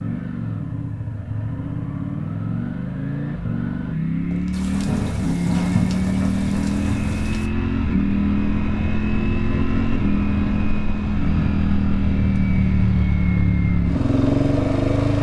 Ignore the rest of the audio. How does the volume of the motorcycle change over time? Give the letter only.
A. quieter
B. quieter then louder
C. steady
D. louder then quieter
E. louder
E.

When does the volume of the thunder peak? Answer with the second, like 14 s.
6 s.